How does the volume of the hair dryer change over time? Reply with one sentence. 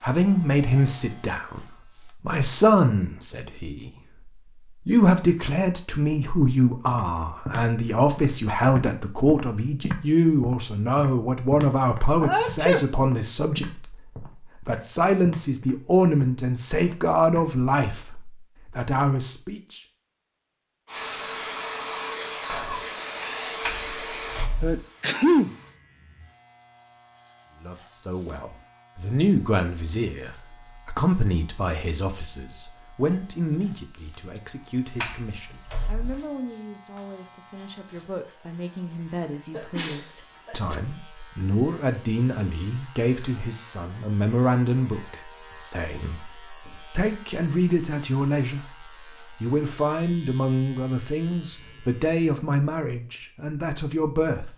The volume of the hair dryer goes down.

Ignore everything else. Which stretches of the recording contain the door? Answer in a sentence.
You can hear the door from 23.6 to 24.8 s and from 35.0 to 36.2 s.